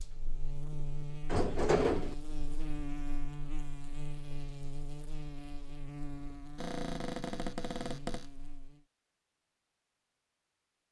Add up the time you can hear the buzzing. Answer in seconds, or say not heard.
9 s.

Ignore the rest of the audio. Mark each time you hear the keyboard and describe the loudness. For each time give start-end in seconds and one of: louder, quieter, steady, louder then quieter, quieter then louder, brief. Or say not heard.
not heard.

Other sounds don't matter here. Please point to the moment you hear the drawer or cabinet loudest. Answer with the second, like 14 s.
2 s.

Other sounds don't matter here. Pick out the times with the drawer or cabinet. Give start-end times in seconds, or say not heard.
1.2-2.1, 6.5-8.3.